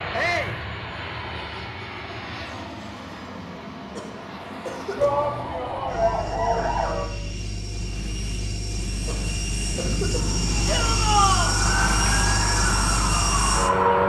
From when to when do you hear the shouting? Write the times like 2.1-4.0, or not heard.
0.1-0.6, 5.0-6.7, 10.7-11.6.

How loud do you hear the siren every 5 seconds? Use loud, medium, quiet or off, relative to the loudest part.
off, loud, loud.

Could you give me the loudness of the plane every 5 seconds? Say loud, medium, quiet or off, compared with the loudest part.
medium, medium, loud.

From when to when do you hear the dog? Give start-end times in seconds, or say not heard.
not heard.